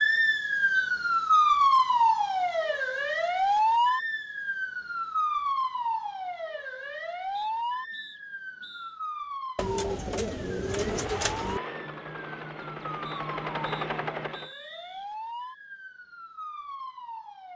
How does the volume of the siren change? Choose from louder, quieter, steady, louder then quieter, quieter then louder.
quieter.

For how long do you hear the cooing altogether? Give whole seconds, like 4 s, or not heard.
2 s.